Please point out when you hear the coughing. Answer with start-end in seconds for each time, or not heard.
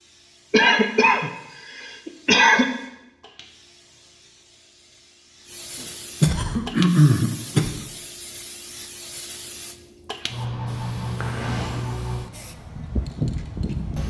0.5-2.6, 6.2-7.8, 11.2-11.8.